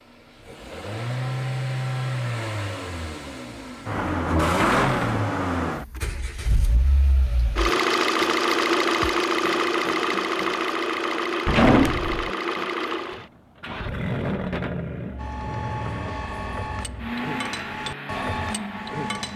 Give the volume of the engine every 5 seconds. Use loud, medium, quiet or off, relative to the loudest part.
loud, loud, loud, medium.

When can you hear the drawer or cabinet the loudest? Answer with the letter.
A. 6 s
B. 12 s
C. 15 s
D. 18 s
B.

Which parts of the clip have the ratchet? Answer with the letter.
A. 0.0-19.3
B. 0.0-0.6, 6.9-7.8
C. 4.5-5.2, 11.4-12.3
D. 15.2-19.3
D.